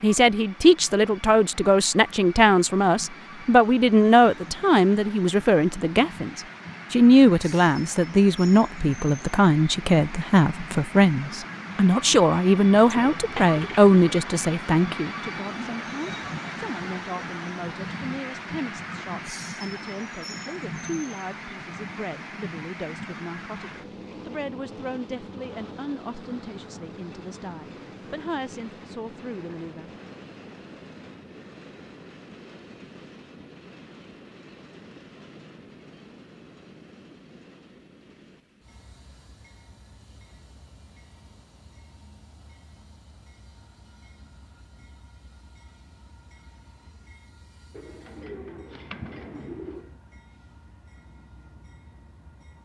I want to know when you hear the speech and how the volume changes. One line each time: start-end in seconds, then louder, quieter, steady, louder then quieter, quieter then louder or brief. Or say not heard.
0.0-29.9 quieter.